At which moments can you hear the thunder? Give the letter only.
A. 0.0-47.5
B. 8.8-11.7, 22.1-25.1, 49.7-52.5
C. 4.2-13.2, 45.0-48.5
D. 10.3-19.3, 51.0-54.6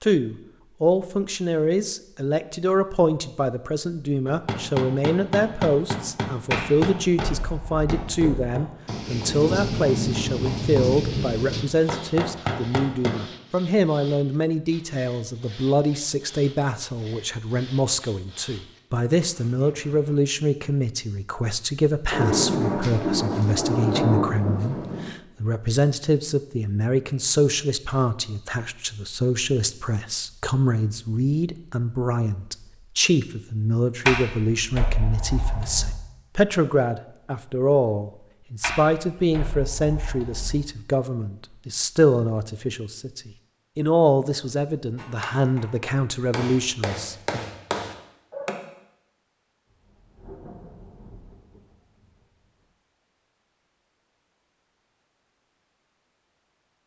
B.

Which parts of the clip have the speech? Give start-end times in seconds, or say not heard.
0.0-47.5.